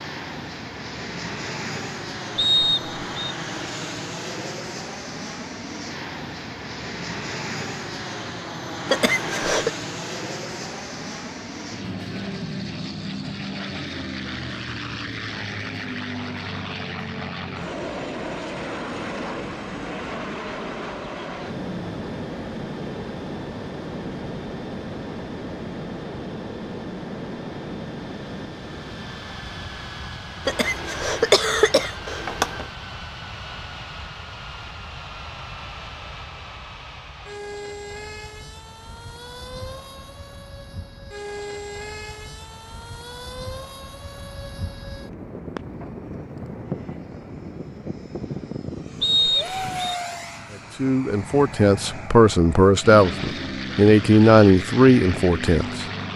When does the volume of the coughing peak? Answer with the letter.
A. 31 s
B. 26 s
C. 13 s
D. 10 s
A.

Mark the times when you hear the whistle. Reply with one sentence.
The whistle can be heard from 2.4 to 3.4 s and from 49.0 to 50.0 s.